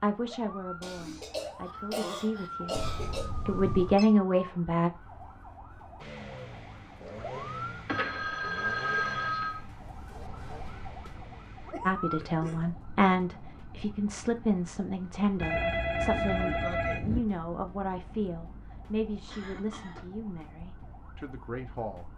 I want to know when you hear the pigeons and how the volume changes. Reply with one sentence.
The pigeons can't be heard in this clip.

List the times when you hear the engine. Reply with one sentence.
You can hear the engine from 6.0 to 11.8 s.